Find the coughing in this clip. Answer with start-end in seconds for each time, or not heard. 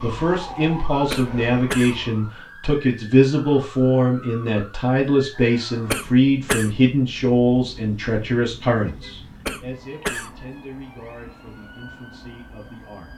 1.1-1.9, 5.9-6.7, 9.4-10.3.